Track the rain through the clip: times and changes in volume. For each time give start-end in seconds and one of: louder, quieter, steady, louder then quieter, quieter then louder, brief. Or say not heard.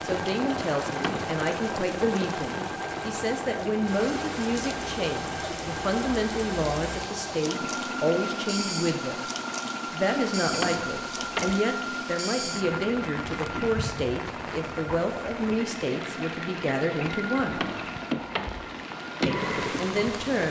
0.0-20.4 steady.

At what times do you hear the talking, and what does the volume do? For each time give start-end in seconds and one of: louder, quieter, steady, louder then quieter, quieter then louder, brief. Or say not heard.
0.0-9.2 steady
9.9-17.6 steady
19.2-20.4 brief.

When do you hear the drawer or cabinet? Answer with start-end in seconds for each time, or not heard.
0.9-1.4, 10.5-11.6, 17.5-18.8.